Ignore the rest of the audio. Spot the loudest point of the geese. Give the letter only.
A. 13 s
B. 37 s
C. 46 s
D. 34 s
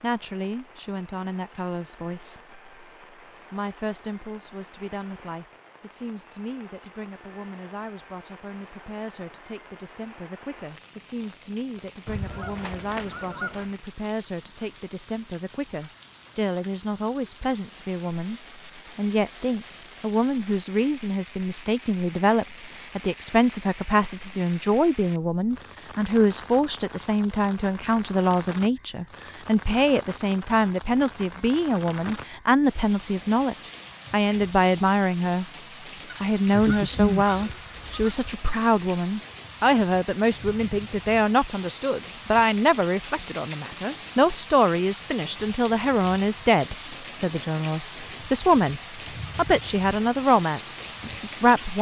B.